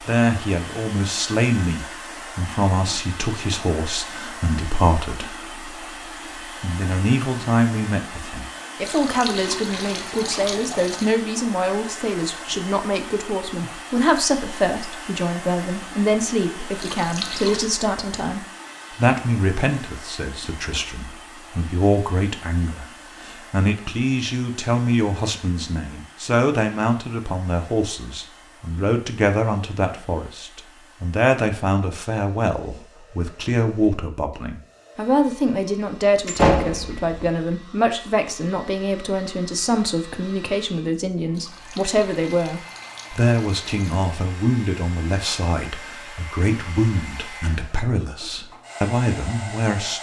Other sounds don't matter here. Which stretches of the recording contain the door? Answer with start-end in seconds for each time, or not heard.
36.2-37.3.